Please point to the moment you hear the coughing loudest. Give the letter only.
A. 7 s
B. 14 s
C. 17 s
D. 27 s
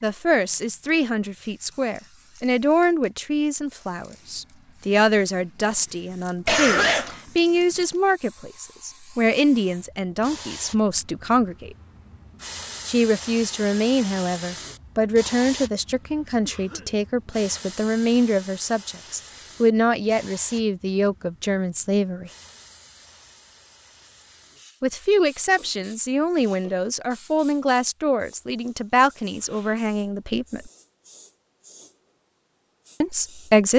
A.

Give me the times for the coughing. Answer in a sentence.
The coughing can be heard from 6.5 to 7.2 s, from 16.4 to 17.8 s and from 25.6 to 26.9 s.